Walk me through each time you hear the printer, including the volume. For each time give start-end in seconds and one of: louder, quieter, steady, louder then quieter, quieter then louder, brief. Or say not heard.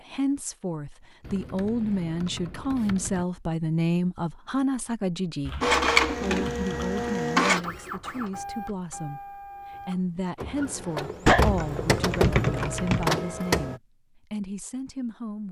5.6-13.8 quieter then louder.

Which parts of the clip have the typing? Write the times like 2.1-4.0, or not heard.
1.2-3.2, 5.5-7.2, 11.2-13.1.